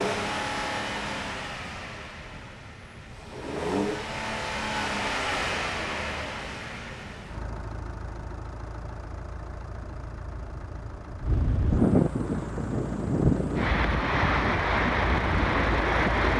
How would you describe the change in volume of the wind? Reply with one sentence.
The loudness of the wind goes up.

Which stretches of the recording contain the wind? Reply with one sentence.
The wind can be heard from 0.2 to 16.3 s.